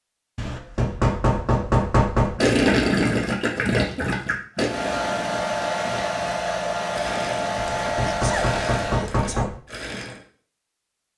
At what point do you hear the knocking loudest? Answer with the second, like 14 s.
2 s.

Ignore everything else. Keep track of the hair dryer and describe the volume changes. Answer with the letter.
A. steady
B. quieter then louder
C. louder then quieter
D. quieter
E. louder
A.